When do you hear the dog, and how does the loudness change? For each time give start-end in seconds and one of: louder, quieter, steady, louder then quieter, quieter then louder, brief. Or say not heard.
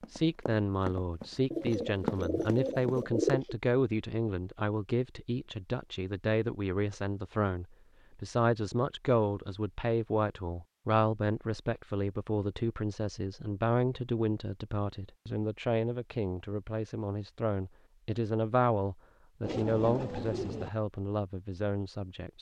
not heard.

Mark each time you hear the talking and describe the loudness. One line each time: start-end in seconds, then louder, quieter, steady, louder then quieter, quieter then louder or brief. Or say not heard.
0.1-22.3 steady.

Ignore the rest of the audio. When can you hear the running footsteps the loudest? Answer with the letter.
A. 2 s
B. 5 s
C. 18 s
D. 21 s
A.